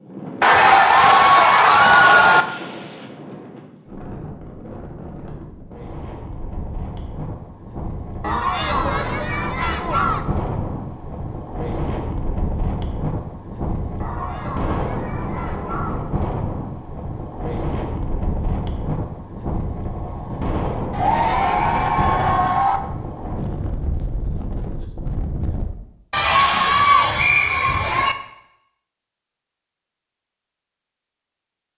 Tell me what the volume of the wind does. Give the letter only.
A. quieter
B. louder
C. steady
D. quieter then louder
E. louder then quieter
B.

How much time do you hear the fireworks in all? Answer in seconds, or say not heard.
not heard.